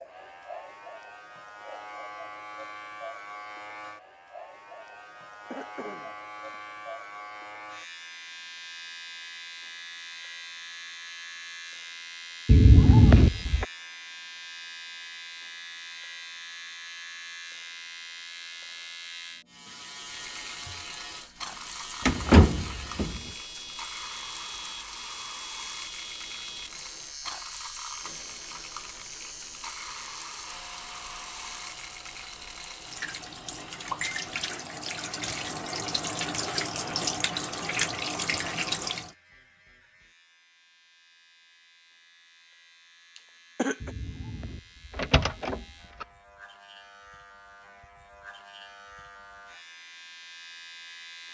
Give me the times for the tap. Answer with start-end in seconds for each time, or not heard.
19.9-39.1.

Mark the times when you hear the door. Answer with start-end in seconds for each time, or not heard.
12.4-13.7, 22.1-23.2, 43.8-46.0.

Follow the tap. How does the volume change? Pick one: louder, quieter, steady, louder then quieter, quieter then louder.
louder.